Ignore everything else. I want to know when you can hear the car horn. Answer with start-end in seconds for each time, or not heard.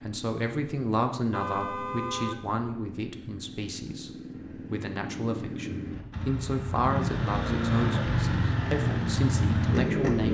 1.3-2.4.